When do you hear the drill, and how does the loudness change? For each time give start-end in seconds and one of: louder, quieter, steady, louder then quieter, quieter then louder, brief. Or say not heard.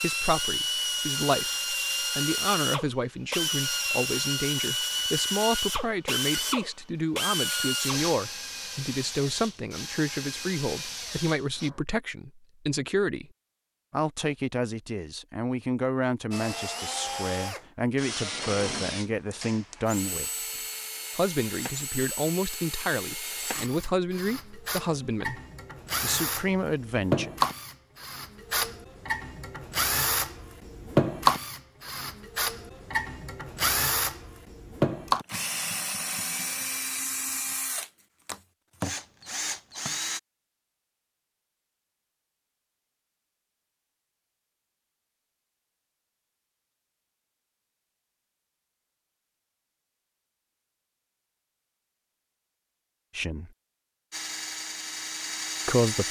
0.0-11.8 quieter
16.3-40.2 louder then quieter
54.1-56.0 brief.